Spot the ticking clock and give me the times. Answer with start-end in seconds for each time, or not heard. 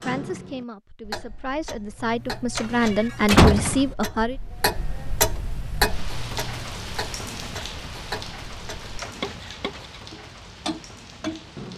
0.0-11.7.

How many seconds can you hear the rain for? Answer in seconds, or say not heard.
7 s.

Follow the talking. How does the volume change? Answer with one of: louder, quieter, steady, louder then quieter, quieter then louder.
louder.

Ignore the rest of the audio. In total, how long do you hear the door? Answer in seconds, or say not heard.
2 s.